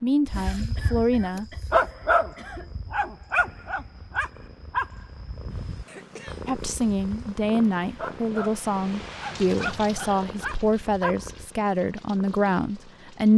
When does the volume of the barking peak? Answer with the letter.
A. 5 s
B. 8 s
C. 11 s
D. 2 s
D.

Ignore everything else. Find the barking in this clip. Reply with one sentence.
The barking can be heard from 0.2 to 11.4 s.